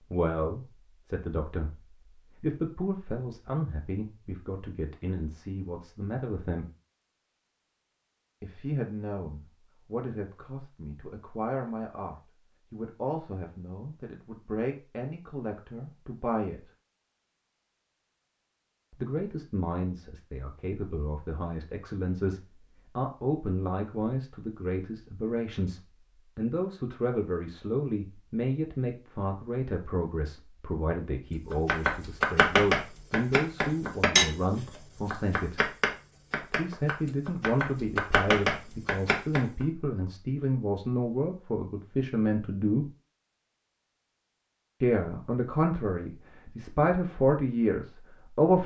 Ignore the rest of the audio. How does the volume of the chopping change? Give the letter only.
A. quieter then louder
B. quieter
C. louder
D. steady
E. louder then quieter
A.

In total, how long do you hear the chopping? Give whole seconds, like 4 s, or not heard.
8 s.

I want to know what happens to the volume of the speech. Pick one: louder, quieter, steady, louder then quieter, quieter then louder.
louder.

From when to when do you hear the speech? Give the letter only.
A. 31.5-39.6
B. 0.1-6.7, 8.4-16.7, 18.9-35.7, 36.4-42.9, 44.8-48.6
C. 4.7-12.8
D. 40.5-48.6
B.